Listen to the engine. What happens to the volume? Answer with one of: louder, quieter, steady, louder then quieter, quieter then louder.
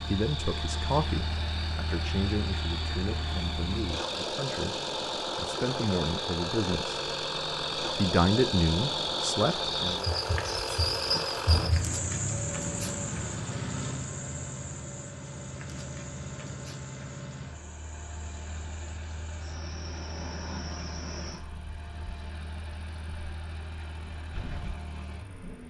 quieter.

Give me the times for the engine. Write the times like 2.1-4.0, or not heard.
0.0-25.6.